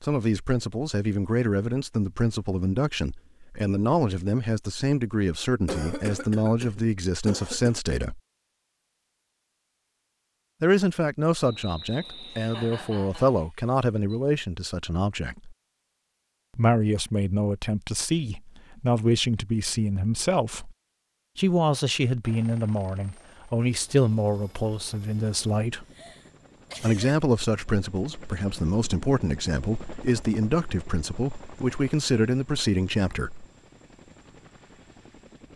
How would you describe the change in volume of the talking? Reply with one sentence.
The loudness of the talking stays about the same.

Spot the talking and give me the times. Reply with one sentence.
You can hear the talking from 0.0 to 8.2 s, from 10.6 to 15.6 s, from 16.6 to 20.8 s, from 21.4 to 25.9 s and from 26.8 to 33.5 s.